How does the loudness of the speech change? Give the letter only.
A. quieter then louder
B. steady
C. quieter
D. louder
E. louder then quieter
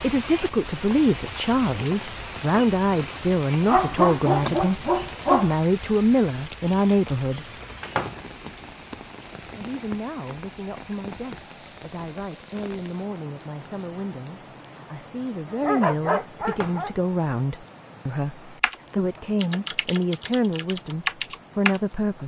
A.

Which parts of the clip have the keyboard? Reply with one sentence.
You can hear the keyboard from 18.6 to 21.8 s.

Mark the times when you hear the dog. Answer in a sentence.
The dog can be heard from 3.6 to 5.5 s and from 15.5 to 16.9 s.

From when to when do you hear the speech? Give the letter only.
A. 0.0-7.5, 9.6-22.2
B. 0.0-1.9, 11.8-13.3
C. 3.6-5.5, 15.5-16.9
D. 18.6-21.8
A.